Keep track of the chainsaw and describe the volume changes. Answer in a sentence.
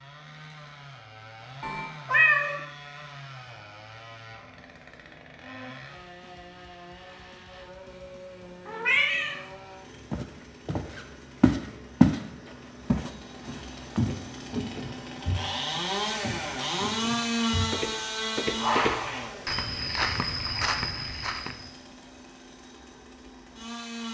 The volume of the chainsaw goes up, then down.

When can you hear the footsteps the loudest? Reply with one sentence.
The volume of the footsteps peaks at 12 seconds.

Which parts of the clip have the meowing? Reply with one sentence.
You can hear the meowing from 1.6 to 2.6 s, from 8.7 to 9.4 s and from 18.6 to 19.3 s.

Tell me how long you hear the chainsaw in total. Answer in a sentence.
You can hear the chainsaw for 24 seconds altogether.